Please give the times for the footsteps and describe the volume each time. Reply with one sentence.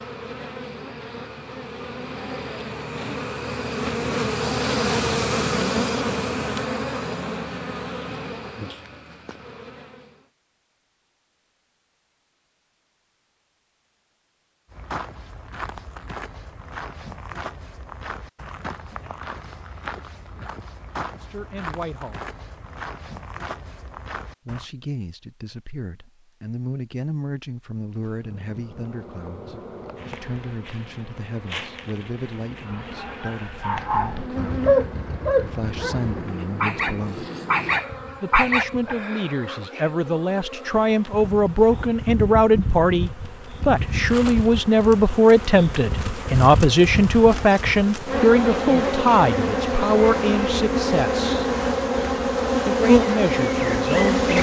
The footsteps can be heard from 14.7 to 24.6 s, at a steady volume.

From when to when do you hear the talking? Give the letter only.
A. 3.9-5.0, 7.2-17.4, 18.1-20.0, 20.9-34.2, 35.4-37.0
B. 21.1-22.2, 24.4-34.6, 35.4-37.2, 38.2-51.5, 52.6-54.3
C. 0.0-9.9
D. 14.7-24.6
B.